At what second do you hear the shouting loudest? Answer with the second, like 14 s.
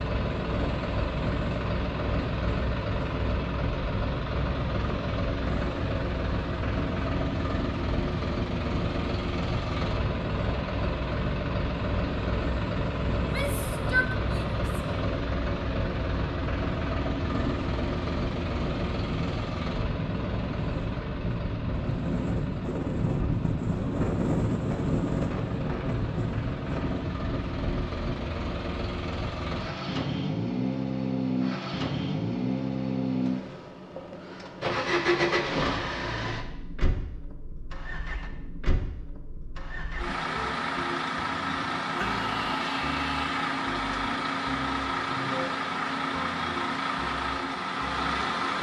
14 s.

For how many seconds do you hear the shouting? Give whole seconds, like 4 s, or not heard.
3 s.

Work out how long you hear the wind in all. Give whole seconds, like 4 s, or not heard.
28 s.